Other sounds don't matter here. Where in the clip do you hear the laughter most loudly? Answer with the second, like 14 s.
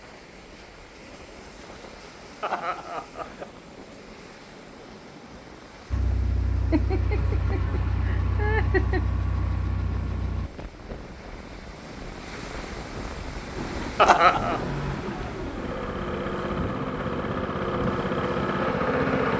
14 s.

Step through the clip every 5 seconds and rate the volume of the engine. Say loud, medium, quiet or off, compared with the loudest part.
off, medium, medium, loud.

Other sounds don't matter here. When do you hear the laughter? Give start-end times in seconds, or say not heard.
2.4-3.5, 6.7-9.1, 13.9-14.6.